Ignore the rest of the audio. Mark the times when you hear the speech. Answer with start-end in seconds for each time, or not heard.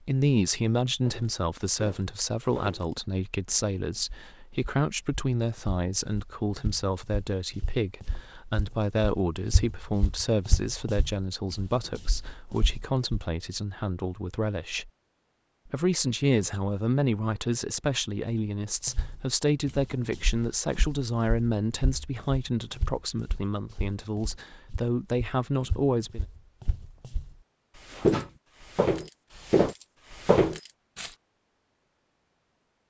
0.0-14.9, 15.7-26.2.